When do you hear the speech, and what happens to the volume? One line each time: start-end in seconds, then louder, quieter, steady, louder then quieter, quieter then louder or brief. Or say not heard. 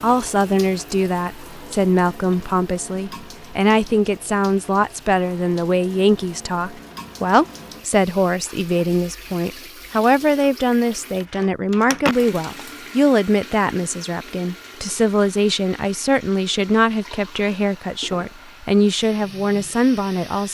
0.0-20.5 steady.